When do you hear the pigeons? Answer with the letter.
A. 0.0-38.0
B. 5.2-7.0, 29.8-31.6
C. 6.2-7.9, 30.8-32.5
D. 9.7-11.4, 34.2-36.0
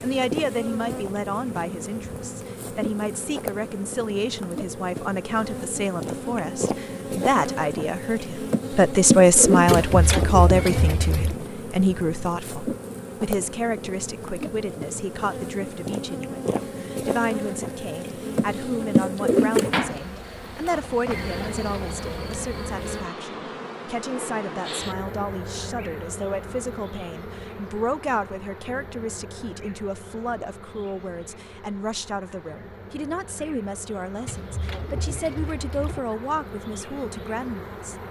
D.